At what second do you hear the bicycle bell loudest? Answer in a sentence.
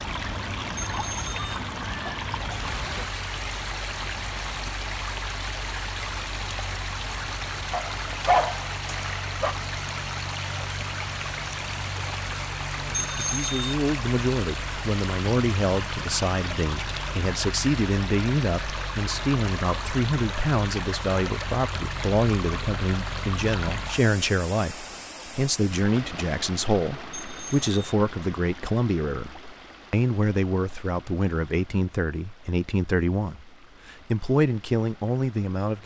The volume of the bicycle bell peaks at 13 seconds.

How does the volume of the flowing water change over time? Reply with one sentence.
The volume of the flowing water goes down.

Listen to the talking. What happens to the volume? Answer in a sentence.
The loudness of the talking stays about the same.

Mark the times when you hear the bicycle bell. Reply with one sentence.
You can hear the bicycle bell from 0.8 to 1.6 s, from 12.9 to 13.8 s and from 27.1 to 27.7 s.